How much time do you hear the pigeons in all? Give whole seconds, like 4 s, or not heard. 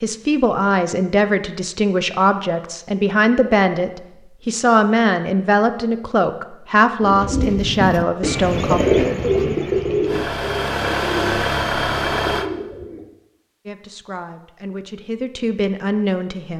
6 s.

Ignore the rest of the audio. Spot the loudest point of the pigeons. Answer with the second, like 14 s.
9 s.